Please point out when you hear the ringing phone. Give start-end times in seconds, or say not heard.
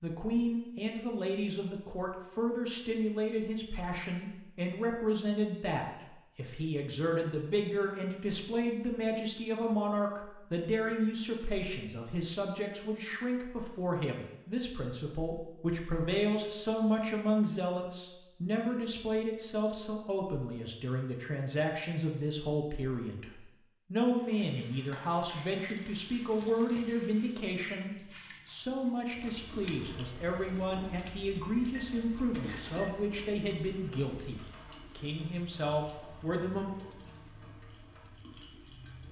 not heard.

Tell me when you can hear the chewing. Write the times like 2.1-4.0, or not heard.
not heard.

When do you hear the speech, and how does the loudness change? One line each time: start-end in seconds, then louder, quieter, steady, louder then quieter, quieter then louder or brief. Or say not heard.
0.0-36.7 steady.